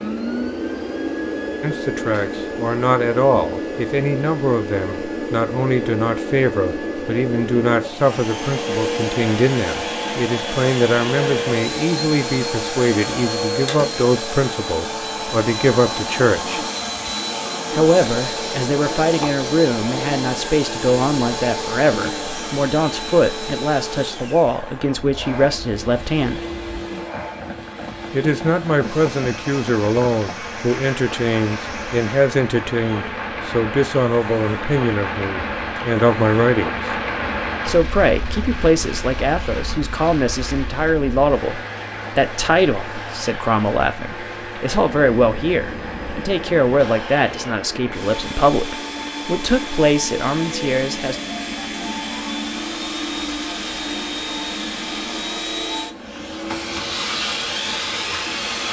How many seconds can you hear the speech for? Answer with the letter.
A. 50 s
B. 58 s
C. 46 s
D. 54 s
C.